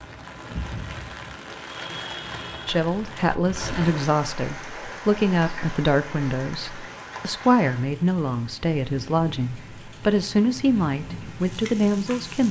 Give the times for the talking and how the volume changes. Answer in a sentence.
The talking can be heard from 2.6 to 12.4 s, at a steady volume.